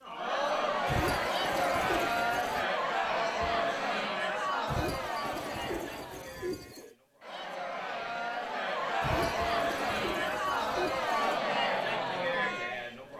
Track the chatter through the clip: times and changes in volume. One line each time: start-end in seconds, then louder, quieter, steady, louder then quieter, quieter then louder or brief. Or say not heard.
0.0-13.1 quieter then louder.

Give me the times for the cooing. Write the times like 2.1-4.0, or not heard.
0.8-2.7, 4.7-7.0, 9.0-11.4.